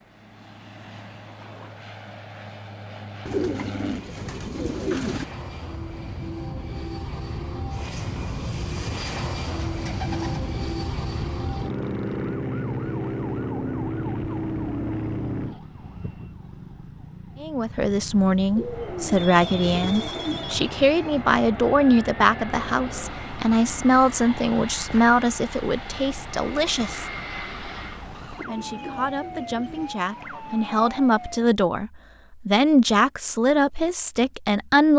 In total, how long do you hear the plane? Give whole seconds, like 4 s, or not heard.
26 s.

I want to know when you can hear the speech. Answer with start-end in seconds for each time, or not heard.
17.4-27.1, 28.4-34.9.